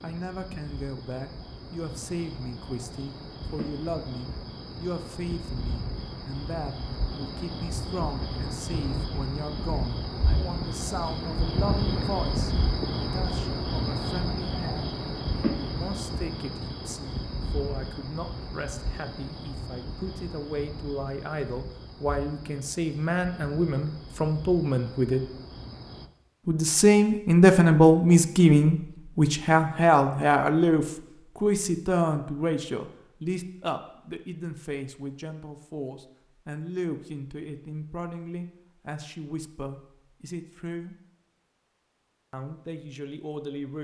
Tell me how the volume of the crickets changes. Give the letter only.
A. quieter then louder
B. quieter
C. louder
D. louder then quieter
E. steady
D.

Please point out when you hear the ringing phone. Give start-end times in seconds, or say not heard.
not heard.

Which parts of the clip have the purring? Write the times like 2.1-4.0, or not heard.
not heard.